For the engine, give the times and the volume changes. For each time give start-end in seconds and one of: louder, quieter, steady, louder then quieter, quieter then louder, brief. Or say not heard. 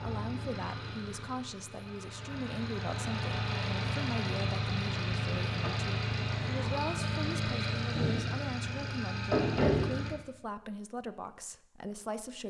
0.0-10.2 louder.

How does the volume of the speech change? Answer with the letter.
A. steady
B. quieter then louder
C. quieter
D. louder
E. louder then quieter
A.